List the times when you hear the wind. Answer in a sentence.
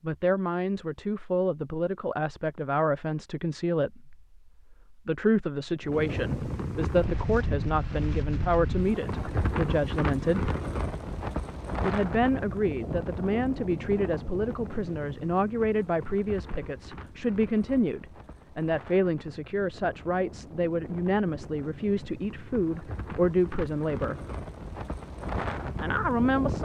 You can hear the wind from 5.8 to 26.6 s.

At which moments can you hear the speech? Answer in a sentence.
You can hear the speech from 0.0 to 10.5 s, from 11.8 to 24.2 s and from 25.8 to 26.6 s.